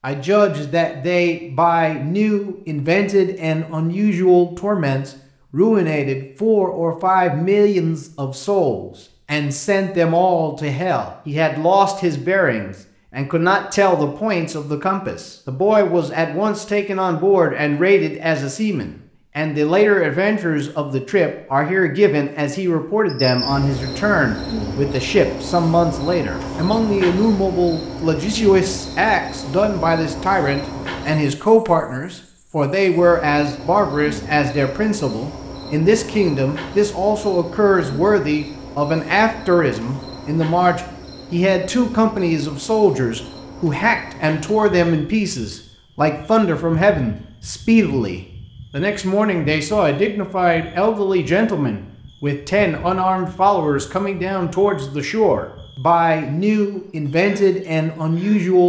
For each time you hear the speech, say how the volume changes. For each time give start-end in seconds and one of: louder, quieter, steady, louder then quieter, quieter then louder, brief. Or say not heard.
0.0-58.6 steady.